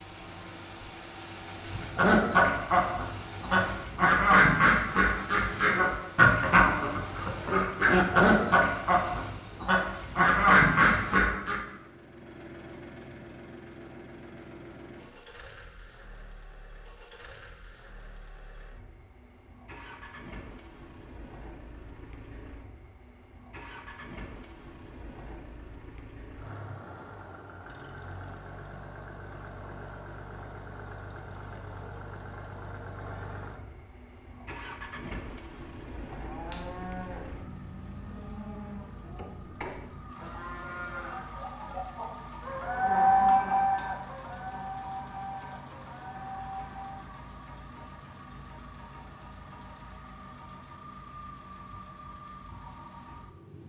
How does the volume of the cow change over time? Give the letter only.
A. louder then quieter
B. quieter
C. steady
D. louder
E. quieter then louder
A.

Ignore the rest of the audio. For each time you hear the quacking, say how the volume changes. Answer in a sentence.
You can hear the quacking from 1.9 to 11.6 s, at a steady volume.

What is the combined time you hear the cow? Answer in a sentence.
The cow can be heard for 11 seconds in total.